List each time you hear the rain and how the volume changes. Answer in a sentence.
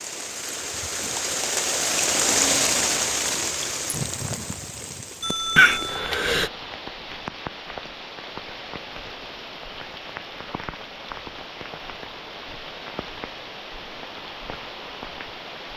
The rain can be heard from 0.0 to 15.7 s, getting quieter.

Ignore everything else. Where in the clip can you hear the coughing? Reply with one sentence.
The coughing can be heard from 5.5 to 6.5 s.